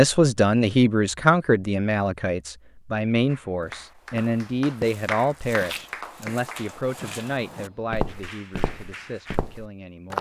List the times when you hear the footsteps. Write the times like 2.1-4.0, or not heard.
3.6-10.1.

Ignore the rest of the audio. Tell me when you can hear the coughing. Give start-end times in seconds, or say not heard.
not heard.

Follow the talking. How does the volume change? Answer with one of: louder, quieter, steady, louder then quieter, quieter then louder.
quieter.